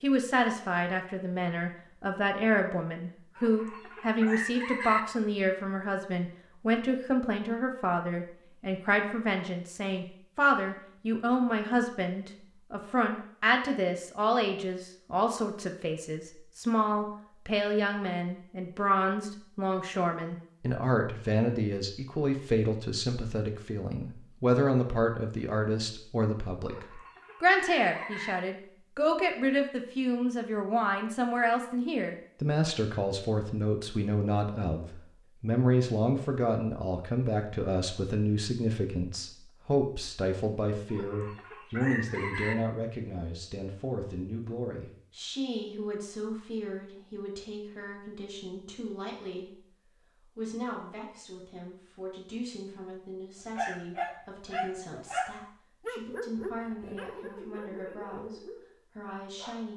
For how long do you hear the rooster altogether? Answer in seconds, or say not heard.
5 s.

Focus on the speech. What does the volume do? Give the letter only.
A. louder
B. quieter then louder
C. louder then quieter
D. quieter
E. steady
D.